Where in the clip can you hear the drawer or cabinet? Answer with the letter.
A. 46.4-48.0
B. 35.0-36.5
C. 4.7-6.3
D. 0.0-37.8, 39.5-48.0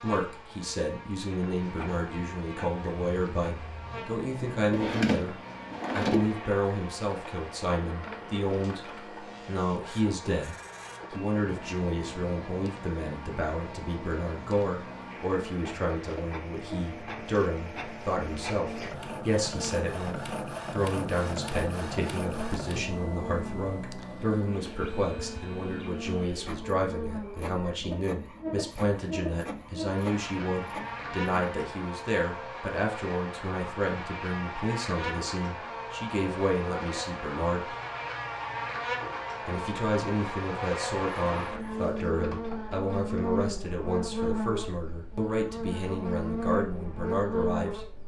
C.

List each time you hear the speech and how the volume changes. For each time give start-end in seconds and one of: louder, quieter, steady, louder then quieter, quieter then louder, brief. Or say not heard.
0.0-37.8 steady
39.5-48.0 steady.